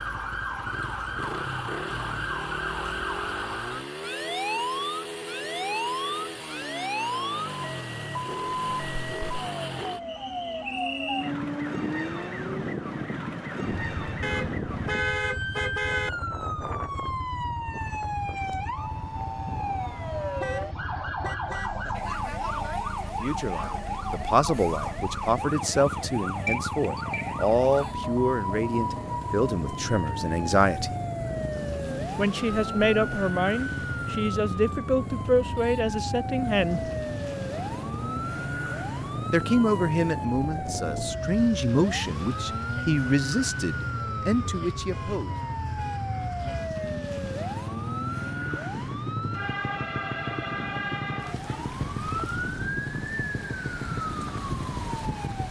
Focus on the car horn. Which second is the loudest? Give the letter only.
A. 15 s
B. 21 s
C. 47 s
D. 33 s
A.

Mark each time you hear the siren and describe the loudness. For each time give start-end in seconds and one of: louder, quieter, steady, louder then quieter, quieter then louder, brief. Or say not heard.
0.0-55.4 steady.